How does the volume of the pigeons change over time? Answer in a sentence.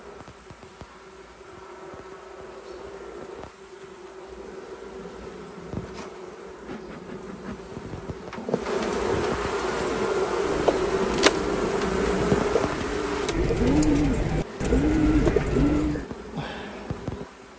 The volume of the pigeons goes up.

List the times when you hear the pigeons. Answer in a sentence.
The pigeons can be heard from 9.7 to 16.1 s.